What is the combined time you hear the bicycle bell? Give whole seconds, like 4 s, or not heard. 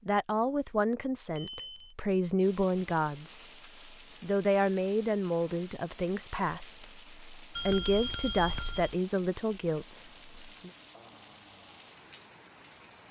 2 s.